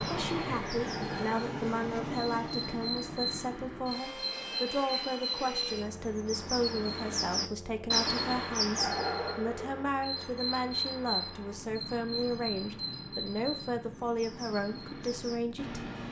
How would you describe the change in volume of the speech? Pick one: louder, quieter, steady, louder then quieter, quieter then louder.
steady.